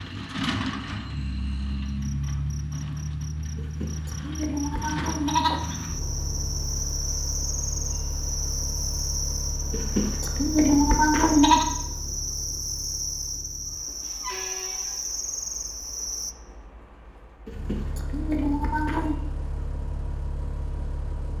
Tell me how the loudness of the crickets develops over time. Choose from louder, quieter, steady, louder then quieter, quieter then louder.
louder.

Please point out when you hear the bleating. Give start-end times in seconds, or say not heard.
3.5-5.6, 9.7-11.7, 17.4-19.1.